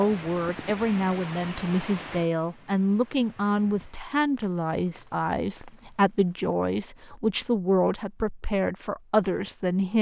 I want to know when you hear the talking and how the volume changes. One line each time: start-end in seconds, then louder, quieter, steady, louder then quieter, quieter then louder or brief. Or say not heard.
0.0-9.9 steady.